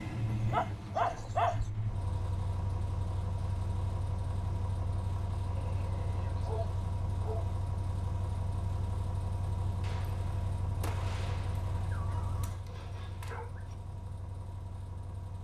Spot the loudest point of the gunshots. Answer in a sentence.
The loudest moment of the gunshots is at 11 seconds.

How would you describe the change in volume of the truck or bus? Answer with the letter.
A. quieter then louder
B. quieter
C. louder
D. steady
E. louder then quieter
B.